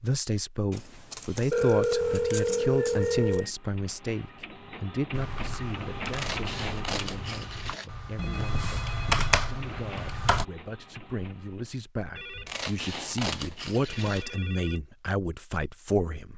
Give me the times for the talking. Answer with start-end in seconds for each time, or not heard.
0.0-16.3.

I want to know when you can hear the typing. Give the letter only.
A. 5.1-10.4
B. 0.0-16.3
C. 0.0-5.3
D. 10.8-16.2
A.